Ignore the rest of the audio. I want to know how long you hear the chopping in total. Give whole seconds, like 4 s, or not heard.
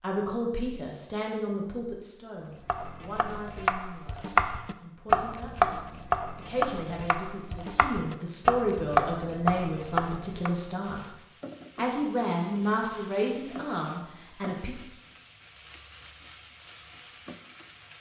8 s.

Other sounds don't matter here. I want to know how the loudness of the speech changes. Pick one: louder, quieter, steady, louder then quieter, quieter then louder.
quieter then louder.